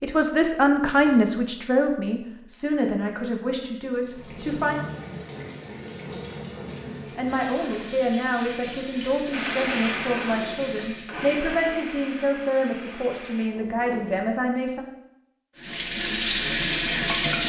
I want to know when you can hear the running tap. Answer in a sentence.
The running tap can be heard from 4.0 to 11.2 s and from 15.6 to 17.4 s.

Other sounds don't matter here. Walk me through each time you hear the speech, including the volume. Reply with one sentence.
You can hear the speech from 0.0 to 4.8 s, getting quieter; and from 7.2 to 14.8 s, at a steady volume.